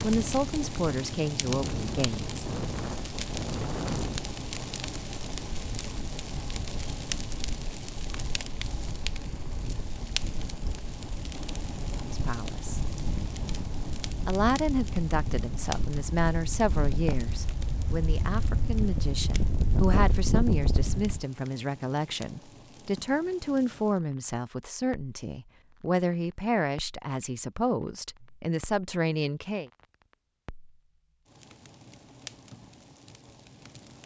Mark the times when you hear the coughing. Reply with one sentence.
The coughing can't be heard in this clip.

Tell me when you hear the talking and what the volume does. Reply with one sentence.
The talking can be heard briefly from 0.0 to 2.2 s; briefly from 12.1 to 12.8 s; and from 14.2 to 29.7 s, at a steady volume.